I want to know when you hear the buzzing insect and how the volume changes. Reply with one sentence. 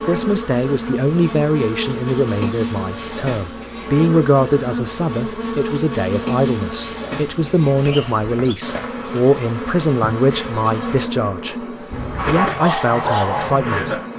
The buzzing insect can be heard from 0.0 to 14.1 s, at a steady volume.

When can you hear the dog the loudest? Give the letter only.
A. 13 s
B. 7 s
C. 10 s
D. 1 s
A.